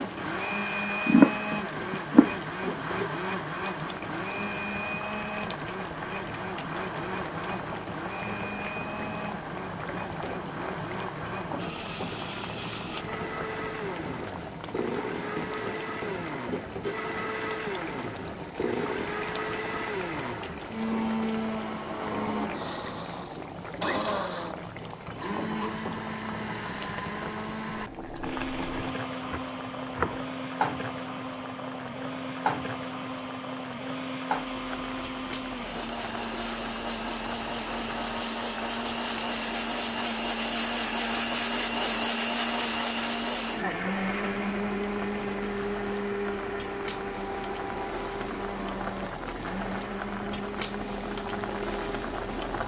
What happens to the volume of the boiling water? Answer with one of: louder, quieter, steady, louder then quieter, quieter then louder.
steady.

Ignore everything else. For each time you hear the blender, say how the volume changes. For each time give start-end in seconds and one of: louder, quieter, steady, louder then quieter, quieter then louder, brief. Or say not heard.
0.0-52.6 steady.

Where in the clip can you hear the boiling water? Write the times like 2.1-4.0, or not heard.
0.0-52.6.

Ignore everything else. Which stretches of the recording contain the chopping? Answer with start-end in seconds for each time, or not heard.
1.1-2.3, 29.2-30.2.